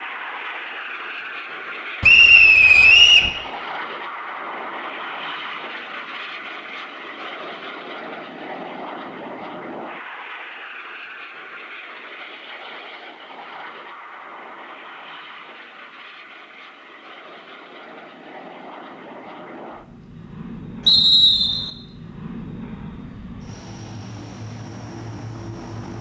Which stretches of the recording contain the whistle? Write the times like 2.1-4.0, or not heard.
2.0-3.3, 20.9-21.7.